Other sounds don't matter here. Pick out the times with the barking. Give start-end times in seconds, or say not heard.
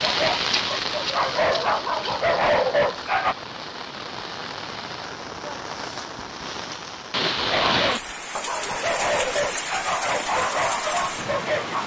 0.0-3.4, 7.3-11.8.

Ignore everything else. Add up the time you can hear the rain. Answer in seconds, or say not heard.
12 s.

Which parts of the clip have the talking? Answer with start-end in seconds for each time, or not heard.
not heard.